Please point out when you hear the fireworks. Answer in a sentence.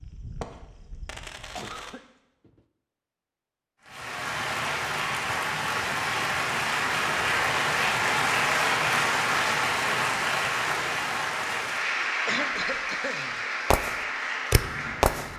You can hear the fireworks from 0.0 to 1.9 s and from 13.7 to 15.3 s.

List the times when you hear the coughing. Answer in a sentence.
You can hear the coughing from 1.6 to 2.6 s and from 12.2 to 13.4 s.